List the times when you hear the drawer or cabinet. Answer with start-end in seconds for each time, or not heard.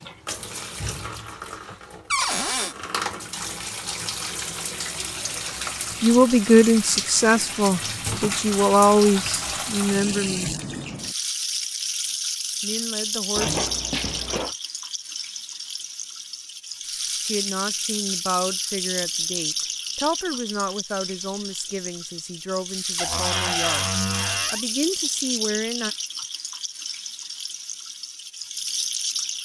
2.1-2.8, 13.3-14.6, 22.9-24.6.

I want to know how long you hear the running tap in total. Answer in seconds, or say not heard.
29 s.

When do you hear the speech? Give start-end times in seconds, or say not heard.
6.0-10.5, 12.6-13.6, 17.2-25.9.